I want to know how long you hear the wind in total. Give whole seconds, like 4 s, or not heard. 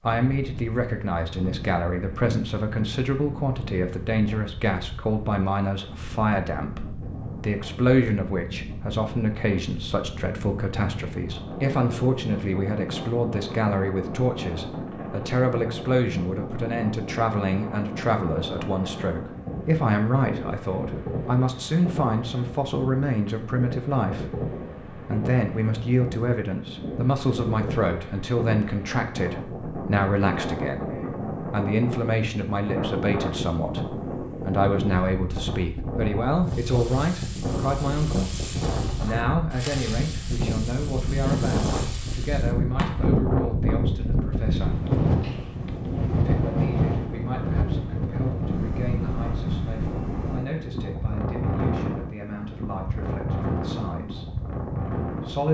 55 s.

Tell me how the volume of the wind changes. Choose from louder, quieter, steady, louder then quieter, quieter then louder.
louder.